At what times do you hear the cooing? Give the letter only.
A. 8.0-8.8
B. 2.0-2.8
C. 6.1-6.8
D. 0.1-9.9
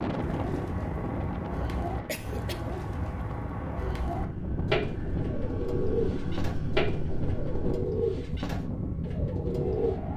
D.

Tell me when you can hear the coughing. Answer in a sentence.
You can hear the coughing from 2.0 to 2.8 s.